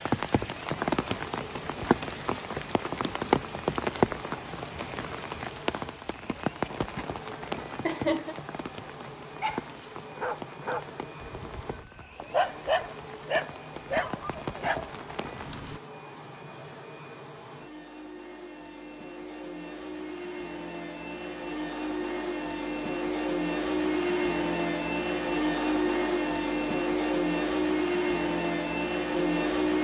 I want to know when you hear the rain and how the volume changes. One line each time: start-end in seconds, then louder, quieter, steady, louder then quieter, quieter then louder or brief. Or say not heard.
0.0-15.8 quieter.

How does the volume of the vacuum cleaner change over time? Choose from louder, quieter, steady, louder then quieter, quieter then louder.
louder.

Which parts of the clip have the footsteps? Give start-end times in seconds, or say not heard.
not heard.